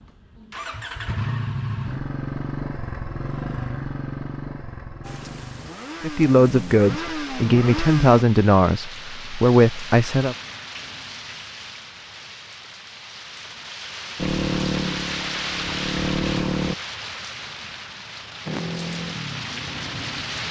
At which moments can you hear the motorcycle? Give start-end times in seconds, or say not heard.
0.0-8.2, 14.2-16.8, 18.4-20.4.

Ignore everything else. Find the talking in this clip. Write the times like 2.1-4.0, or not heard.
6.0-10.3.